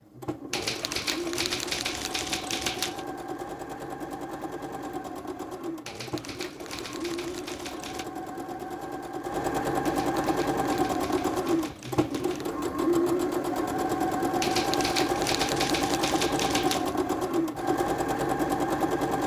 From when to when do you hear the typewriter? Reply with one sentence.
You can hear the typewriter from 0.5 to 3.0 s, from 5.8 to 8.1 s, from 9.8 to 12.5 s and from 14.4 to 16.9 s.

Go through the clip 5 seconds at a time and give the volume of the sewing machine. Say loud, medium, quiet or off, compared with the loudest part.
medium, medium, loud, loud.